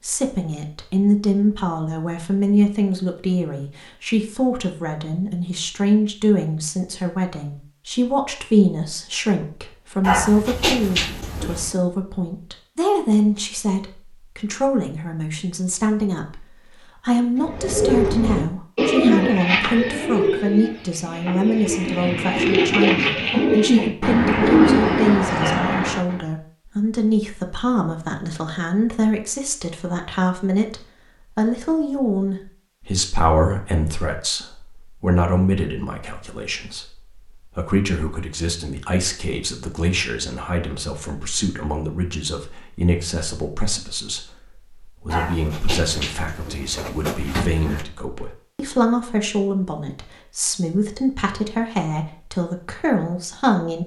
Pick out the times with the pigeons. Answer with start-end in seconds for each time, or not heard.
17.4-26.2.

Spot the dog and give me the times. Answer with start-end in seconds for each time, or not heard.
10.0-11.8, 45.1-47.9.